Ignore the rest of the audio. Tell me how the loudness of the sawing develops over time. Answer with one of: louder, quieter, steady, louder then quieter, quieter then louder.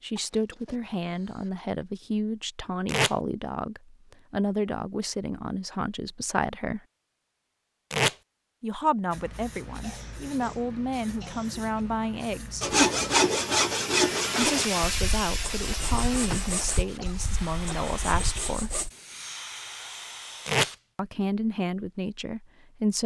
quieter.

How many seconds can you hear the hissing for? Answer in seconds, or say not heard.
12 s.